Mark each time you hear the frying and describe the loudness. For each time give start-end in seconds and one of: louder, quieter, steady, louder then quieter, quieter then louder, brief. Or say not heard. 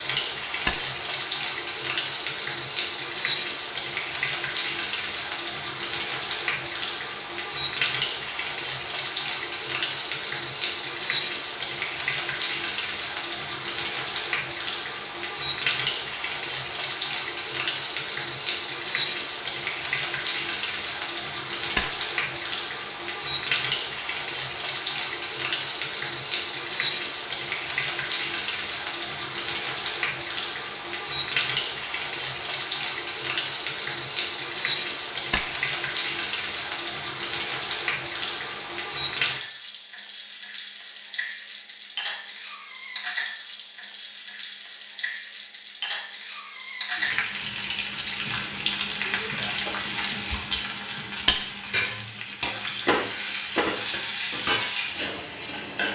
0.0-55.9 steady.